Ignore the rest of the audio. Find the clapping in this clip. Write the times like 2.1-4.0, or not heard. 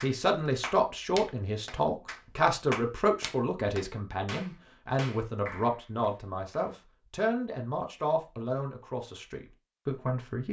0.0-6.8.